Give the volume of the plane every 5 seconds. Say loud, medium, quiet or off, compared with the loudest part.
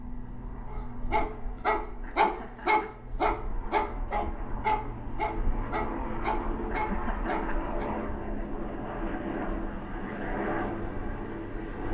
medium, loud, loud.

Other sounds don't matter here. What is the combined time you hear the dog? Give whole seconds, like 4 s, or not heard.
7 s.